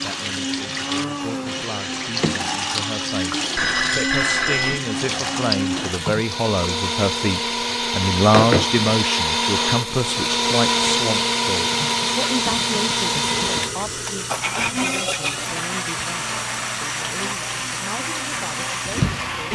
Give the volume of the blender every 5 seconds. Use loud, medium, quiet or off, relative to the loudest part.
medium, loud, loud, medium.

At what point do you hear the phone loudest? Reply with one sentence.
The volume of the phone peaks at 4 seconds.